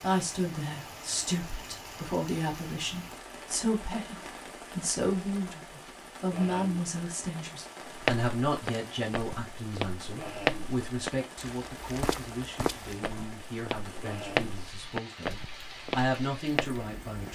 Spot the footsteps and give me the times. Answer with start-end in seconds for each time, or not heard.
7.8-16.9.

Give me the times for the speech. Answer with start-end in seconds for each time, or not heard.
0.0-17.2.